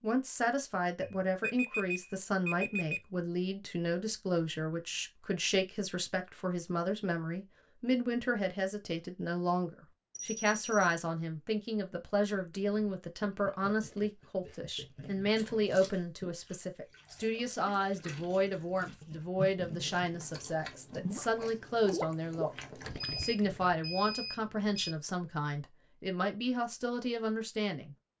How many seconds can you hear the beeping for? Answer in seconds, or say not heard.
5 s.